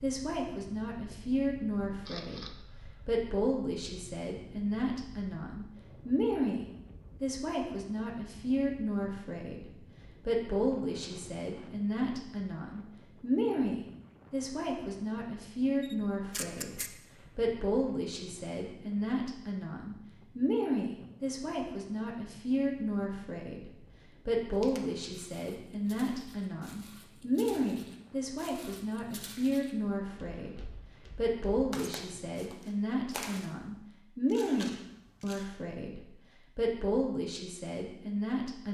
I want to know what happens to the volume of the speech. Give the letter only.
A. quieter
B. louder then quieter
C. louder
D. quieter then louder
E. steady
E.